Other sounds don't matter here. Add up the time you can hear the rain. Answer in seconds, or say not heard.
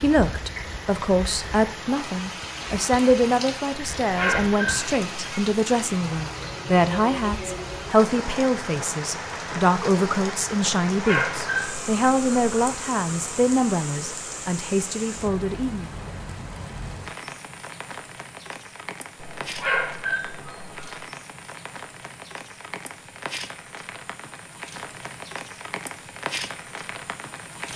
28 s.